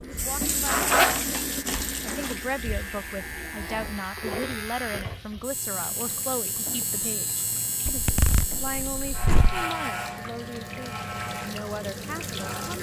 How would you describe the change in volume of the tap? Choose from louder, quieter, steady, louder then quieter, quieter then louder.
quieter then louder.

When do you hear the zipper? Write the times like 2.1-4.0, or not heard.
0.7-2.3, 7.8-9.7.